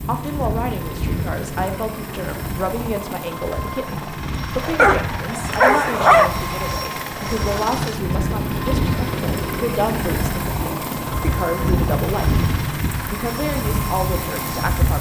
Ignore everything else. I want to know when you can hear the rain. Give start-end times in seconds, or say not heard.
0.0-14.9.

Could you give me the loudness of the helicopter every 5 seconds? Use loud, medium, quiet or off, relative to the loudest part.
medium, loud, loud.